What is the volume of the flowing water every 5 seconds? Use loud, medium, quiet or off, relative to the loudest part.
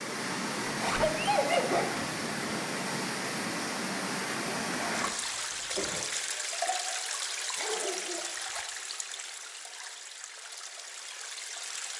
loud, loud, medium.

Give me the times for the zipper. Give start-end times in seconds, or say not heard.
0.7-1.1, 4.7-6.1, 8.3-8.8.